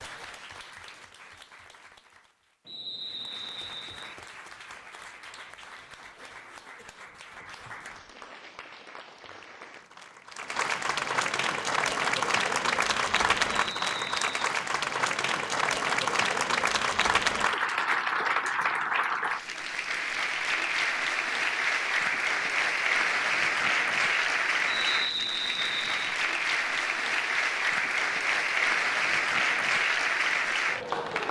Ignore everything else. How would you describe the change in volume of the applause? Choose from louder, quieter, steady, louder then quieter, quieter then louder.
louder.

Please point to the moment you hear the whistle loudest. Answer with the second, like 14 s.
25 s.